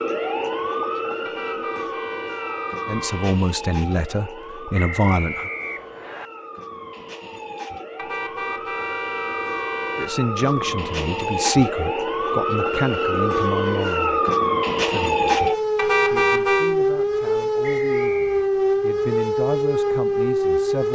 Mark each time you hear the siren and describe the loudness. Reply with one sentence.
The siren can be heard from 0.0 to 20.8 s, getting quieter then louder.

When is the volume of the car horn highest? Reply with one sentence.
The volume of the car horn peaks at 16 seconds.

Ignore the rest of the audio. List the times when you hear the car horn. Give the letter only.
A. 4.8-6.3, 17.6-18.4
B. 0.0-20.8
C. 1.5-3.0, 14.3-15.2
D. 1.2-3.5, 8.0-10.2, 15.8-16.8
D.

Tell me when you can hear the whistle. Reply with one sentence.
The whistle can be heard from 4.8 to 6.3 s and from 17.6 to 18.4 s.